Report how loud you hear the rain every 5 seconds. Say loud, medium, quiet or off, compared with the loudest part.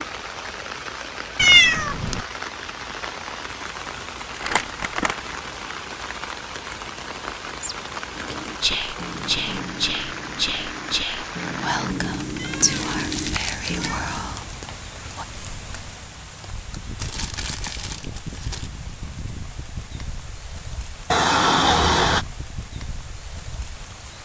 loud, loud, loud, medium, medium.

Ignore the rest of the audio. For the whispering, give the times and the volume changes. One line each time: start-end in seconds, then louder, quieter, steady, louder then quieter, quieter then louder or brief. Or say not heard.
7.6-15.2 quieter.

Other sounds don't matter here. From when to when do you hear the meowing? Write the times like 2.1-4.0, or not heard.
1.4-2.2, 12.3-14.0, 21.1-22.2.